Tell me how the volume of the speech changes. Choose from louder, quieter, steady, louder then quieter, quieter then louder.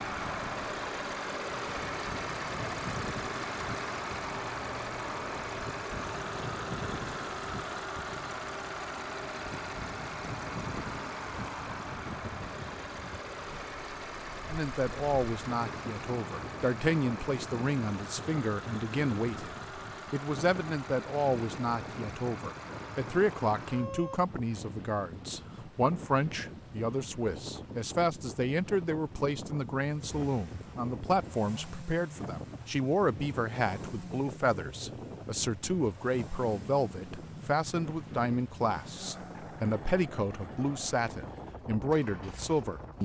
steady.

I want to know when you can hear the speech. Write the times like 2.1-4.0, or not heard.
14.5-43.0.